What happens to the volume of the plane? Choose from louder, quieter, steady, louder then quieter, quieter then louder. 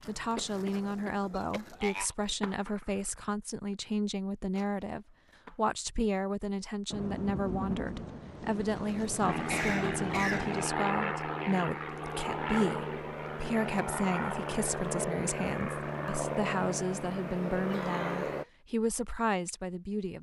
steady.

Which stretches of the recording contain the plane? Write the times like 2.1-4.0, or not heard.
9.2-18.4.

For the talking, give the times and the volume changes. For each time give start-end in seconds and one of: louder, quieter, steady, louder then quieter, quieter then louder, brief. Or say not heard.
0.1-20.1 steady.